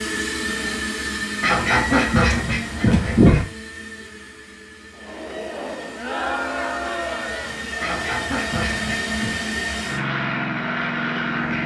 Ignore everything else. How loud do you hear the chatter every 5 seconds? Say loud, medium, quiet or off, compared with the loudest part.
off, loud, medium.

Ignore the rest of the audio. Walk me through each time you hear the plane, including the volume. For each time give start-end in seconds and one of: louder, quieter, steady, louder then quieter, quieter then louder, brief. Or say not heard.
0.0-11.6 quieter then louder.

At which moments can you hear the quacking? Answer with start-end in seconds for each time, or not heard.
1.4-3.5, 7.8-9.3.